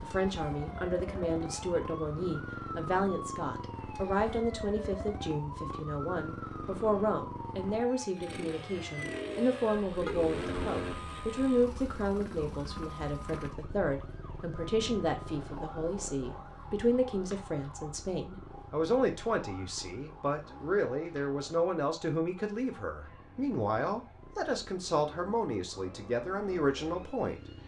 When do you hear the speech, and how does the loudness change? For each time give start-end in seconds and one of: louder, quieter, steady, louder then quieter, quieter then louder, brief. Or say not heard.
0.0-27.4 steady.